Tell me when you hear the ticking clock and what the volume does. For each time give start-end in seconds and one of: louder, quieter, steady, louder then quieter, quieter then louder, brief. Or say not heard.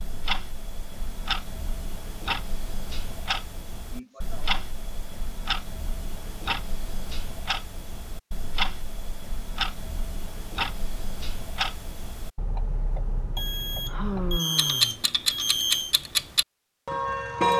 0.0-17.5 louder.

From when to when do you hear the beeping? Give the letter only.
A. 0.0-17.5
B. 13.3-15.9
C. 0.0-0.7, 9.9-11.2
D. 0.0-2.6
B.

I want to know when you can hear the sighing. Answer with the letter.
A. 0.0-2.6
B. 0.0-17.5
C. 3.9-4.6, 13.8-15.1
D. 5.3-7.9
C.